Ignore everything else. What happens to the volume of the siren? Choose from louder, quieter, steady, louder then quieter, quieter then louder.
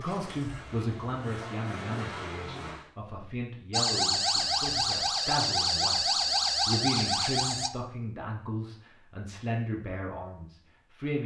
steady.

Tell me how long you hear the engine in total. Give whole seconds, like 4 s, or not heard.
3 s.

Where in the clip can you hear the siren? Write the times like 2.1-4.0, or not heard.
3.7-7.7.